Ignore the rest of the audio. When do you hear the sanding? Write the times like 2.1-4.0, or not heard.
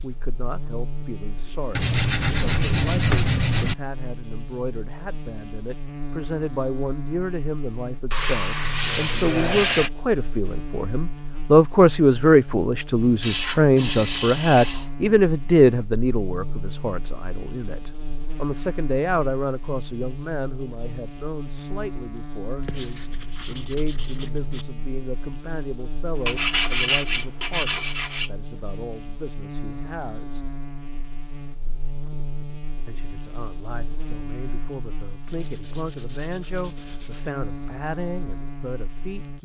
1.8-3.8, 8.1-9.9, 13.2-14.9, 22.6-24.6, 26.2-28.3, 35.2-37.3.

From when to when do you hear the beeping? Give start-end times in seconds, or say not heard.
not heard.